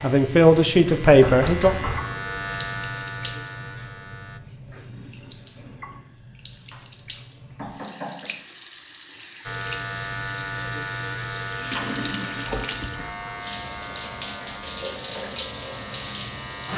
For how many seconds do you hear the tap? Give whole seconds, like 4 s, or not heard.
17 s.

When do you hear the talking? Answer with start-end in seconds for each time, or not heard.
0.0-1.8.